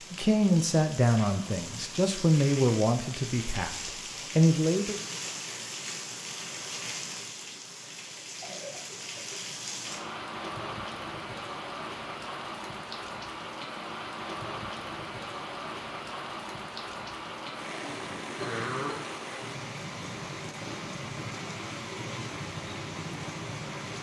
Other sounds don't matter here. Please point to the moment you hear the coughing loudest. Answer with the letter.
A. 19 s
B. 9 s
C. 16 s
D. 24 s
A.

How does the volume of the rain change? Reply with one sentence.
The loudness of the rain stays about the same.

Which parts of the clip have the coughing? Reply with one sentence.
The coughing can be heard from 8.2 to 9.4 s and from 17.8 to 19.1 s.